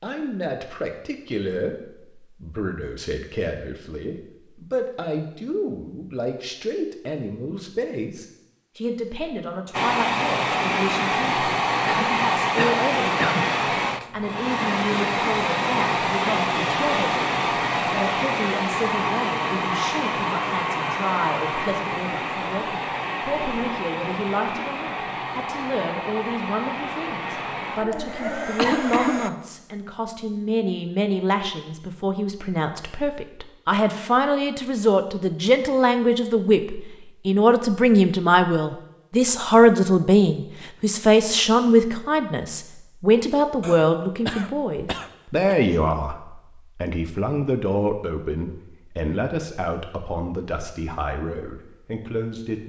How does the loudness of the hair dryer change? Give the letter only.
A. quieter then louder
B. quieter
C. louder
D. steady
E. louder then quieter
B.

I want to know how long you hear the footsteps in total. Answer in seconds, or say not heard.
not heard.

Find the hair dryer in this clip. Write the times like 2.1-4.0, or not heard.
9.7-29.3.